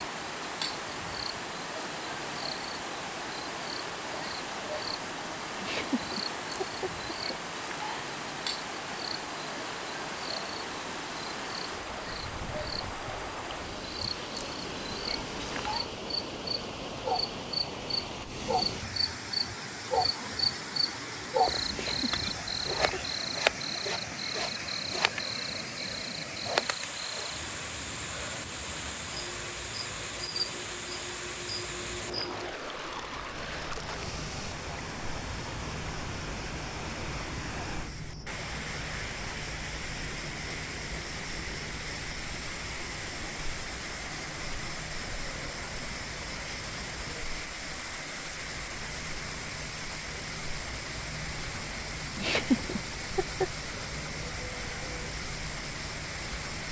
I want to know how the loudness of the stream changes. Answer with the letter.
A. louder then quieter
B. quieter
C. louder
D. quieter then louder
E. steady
E.